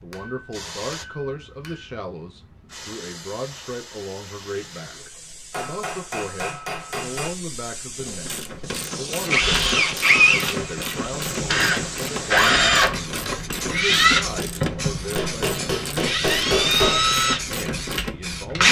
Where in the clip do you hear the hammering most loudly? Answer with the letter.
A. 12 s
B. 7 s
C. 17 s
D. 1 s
C.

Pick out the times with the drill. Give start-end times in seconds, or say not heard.
9.3-18.6.